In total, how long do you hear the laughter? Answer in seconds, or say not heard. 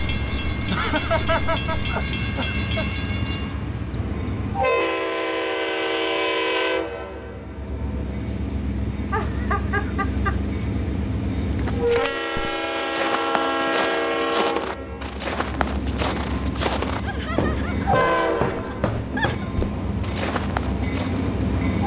6 s.